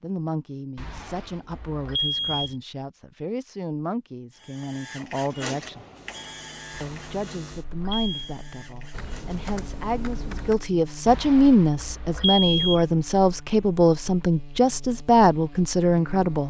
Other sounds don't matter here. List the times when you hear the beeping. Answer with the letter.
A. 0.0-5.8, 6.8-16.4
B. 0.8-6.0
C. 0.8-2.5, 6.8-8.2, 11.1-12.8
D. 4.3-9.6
C.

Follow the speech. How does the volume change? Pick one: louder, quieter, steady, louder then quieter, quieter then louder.
louder.